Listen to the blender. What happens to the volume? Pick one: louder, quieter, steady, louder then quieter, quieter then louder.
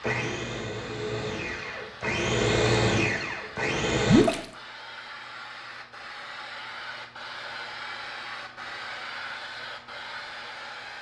louder then quieter.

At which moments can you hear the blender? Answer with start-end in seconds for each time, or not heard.
0.0-4.2.